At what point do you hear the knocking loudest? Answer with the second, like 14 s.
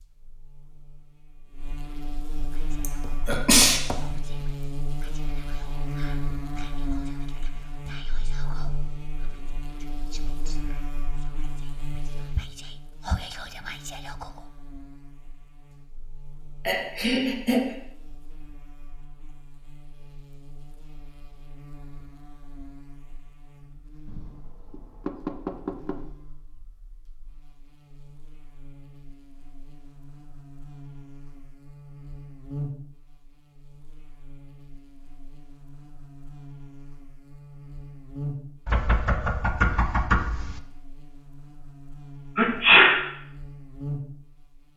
40 s.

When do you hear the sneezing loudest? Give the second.
43 s.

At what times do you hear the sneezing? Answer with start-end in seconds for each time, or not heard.
2.8-3.8, 16.6-17.8, 42.4-43.0.